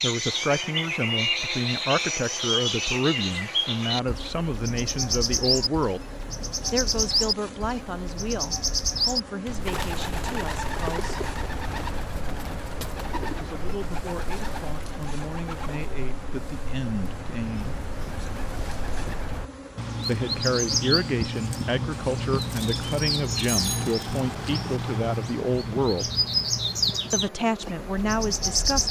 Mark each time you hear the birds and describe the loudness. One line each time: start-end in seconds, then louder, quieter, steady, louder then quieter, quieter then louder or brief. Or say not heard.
0.0-28.8 quieter then louder.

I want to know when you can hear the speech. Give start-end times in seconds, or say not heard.
0.0-6.0, 6.7-11.2, 13.2-17.8, 20.1-26.1, 27.1-28.8.